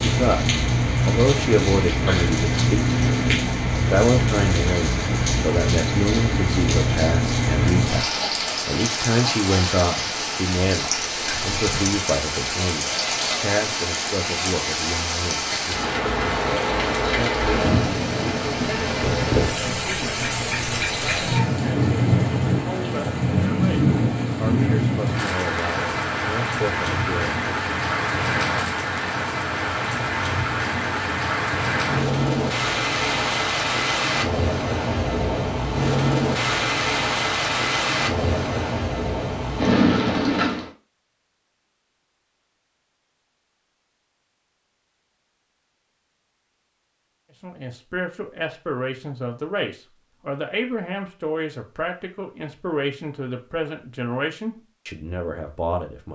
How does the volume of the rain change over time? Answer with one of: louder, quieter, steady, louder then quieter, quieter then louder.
steady.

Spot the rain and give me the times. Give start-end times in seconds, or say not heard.
0.0-40.7.